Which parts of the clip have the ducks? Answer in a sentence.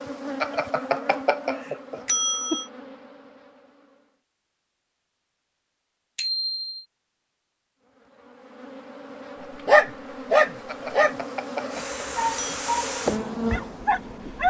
You can't hear the ducks here.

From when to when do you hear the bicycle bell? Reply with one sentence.
The bicycle bell can be heard from 0.4 to 2.6 s, from 6.2 to 6.8 s and from 10.7 to 12.6 s.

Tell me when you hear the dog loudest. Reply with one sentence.
The volume of the dog peaks at 10 seconds.